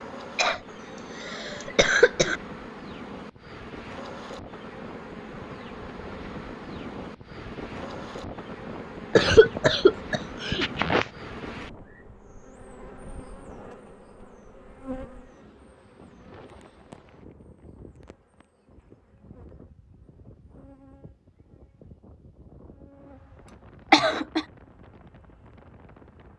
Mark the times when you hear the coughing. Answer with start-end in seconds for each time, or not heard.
0.3-2.4, 9.2-11.1, 23.4-24.4.